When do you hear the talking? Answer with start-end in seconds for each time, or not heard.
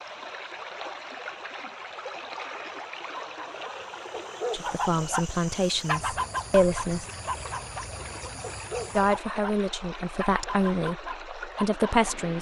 4.5-7.0, 8.9-12.3.